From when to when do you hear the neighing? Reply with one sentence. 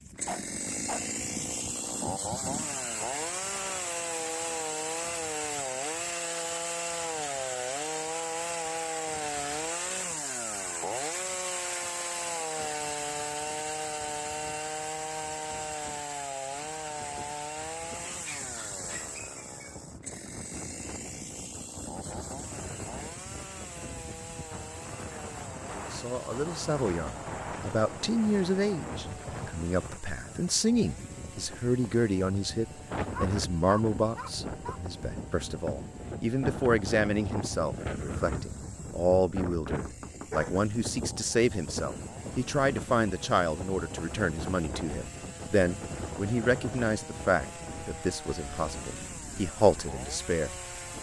You can't hear the neighing here.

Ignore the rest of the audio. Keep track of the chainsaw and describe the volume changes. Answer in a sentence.
The loudness of the chainsaw goes down, then up.